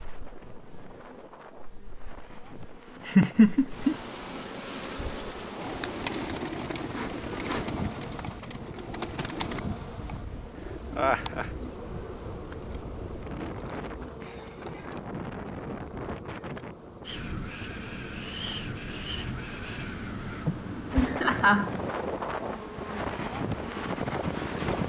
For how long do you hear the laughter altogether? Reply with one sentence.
You can hear the laughter for 3 seconds altogether.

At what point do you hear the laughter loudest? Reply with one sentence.
The loudest moment of the laughter is at 3 seconds.